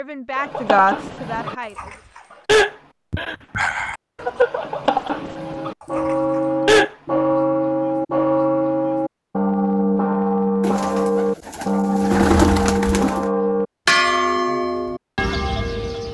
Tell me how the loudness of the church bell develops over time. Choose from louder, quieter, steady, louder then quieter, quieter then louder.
steady.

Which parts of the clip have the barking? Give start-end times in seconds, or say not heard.
0.3-6.9.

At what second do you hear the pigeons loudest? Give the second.
12 s.